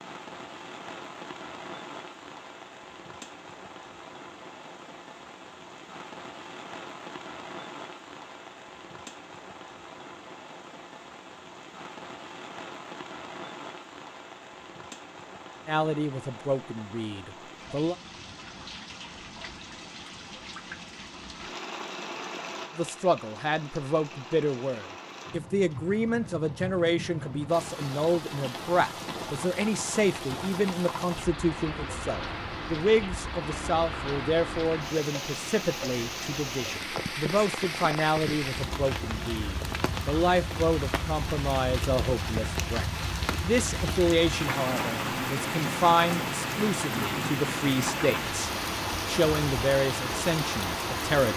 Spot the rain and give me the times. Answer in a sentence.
You can hear the rain from 0.0 to 51.3 s.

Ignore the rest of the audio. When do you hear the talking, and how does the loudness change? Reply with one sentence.
The talking can be heard briefly from 15.7 to 17.9 s; and from 22.8 to 51.3 s, at a steady volume.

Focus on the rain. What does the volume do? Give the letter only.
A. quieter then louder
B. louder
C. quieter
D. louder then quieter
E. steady
B.